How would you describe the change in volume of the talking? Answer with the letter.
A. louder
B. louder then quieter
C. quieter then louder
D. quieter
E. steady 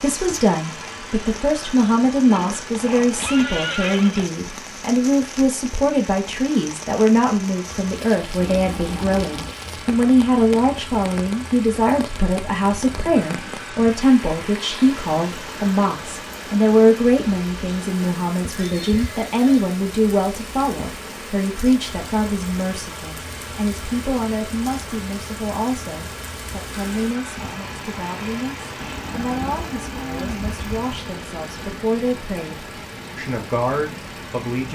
D.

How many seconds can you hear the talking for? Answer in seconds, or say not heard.
35 s.